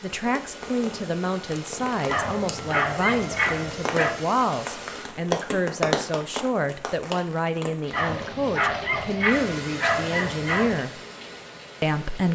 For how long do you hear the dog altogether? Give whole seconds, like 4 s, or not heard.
5 s.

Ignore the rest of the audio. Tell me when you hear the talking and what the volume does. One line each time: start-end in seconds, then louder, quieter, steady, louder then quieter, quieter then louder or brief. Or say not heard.
0.0-10.9 steady
11.8-12.3 brief.